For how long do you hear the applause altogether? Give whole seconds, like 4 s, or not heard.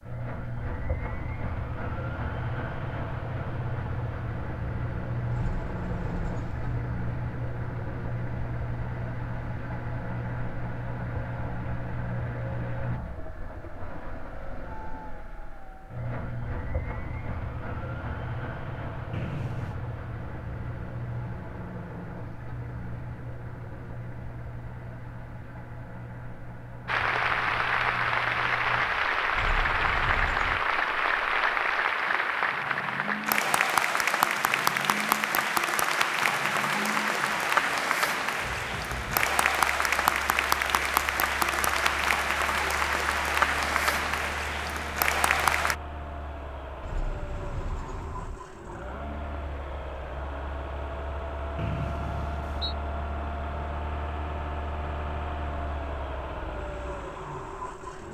19 s.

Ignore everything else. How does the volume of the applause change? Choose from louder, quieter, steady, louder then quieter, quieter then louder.
steady.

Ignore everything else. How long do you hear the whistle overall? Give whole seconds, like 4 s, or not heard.
2 s.